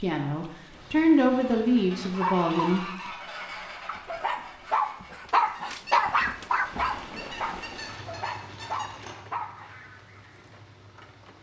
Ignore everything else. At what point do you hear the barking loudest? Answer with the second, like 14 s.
6 s.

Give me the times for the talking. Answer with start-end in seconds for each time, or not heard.
0.0-2.9.